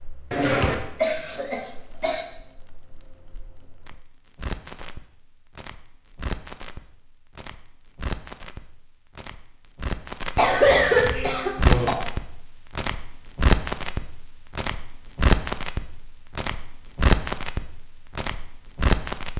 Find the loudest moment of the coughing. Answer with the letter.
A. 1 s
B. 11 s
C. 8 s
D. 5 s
B.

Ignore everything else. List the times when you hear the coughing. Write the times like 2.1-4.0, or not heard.
0.3-2.2, 10.3-11.9.